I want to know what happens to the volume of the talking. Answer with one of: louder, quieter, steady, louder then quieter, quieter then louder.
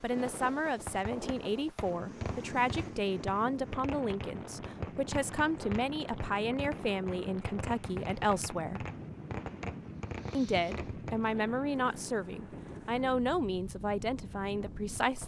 steady.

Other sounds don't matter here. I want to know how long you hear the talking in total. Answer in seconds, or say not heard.
14 s.